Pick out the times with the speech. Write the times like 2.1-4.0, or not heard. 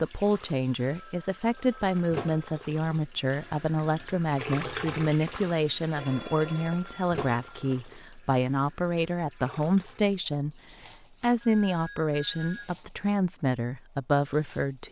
0.0-10.6, 11.2-14.8.